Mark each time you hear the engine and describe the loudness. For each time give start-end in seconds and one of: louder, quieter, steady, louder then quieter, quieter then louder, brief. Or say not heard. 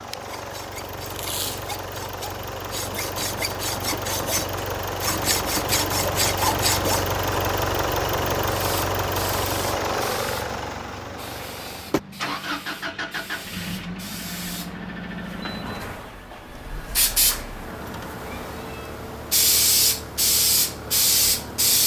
0.0-21.8 louder then quieter.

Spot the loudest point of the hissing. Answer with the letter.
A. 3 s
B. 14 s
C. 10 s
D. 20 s
D.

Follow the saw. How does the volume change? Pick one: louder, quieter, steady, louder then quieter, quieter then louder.
louder.